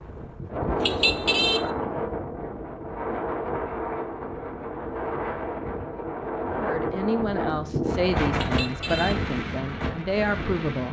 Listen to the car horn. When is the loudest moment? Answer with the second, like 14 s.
1 s.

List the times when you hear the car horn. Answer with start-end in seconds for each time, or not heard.
0.8-1.7, 8.3-9.2.